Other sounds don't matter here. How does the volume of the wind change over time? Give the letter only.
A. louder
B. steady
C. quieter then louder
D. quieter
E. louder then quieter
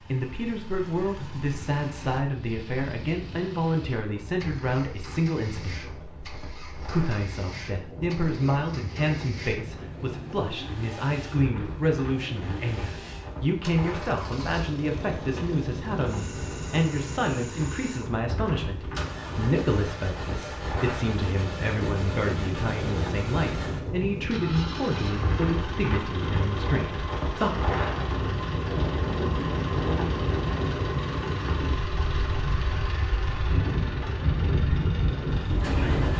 A.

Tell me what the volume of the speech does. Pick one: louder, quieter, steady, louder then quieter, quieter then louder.
steady.